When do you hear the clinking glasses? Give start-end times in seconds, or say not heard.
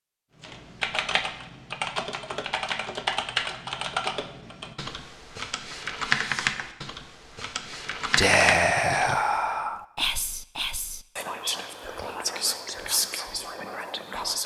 not heard.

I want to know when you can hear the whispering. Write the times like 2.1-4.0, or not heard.
8.2-14.4.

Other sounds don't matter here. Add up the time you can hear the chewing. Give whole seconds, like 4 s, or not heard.
not heard.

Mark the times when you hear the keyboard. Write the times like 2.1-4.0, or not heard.
0.4-9.2.